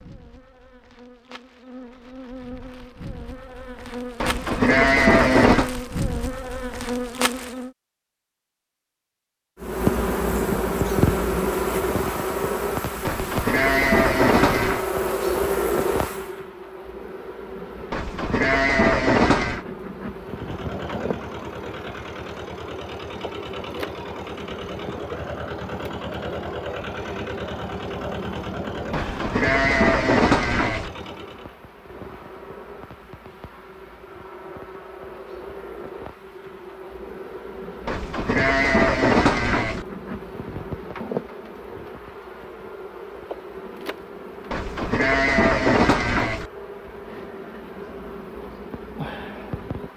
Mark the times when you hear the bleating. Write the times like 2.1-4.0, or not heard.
4.2-5.7, 13.1-14.8, 17.9-19.6, 28.9-30.9, 37.9-39.9, 44.5-46.5.